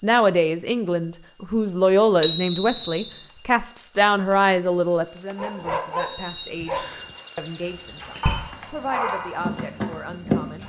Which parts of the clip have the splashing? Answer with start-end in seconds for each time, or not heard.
not heard.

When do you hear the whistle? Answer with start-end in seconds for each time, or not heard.
2.4-3.3, 6.0-7.1.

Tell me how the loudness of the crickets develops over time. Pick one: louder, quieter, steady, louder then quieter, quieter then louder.
louder then quieter.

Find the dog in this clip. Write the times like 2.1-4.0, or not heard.
5.3-10.6.